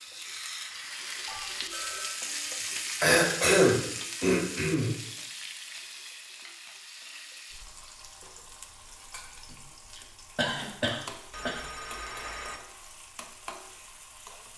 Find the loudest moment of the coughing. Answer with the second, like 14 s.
4 s.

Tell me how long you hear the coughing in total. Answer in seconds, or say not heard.
4 s.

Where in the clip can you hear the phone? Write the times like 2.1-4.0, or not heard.
1.2-2.1, 11.3-12.6.